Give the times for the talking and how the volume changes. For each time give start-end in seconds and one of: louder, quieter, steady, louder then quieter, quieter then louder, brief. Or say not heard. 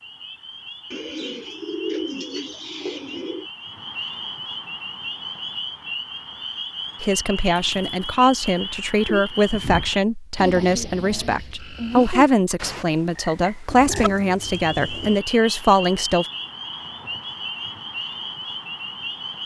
7.0-16.2 steady.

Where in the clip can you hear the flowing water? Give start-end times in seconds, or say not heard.
not heard.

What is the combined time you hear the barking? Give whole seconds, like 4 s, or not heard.
not heard.